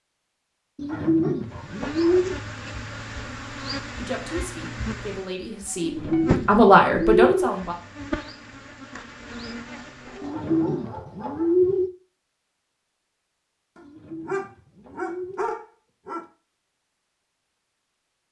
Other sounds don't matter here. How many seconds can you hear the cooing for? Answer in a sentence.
The cooing can be heard for 7 seconds in total.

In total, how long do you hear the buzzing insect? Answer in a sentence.
You can hear the buzzing insect for 9 seconds altogether.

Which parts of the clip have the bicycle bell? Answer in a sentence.
You can't hear the bicycle bell here.